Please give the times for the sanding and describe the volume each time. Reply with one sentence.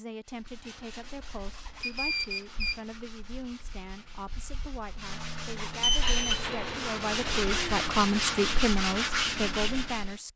The sanding can be heard from 0.2 to 10.2 s, getting louder.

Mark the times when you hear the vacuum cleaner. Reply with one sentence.
You can hear the vacuum cleaner from 6.0 to 8.5 s.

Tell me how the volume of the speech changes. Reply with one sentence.
The loudness of the speech goes up.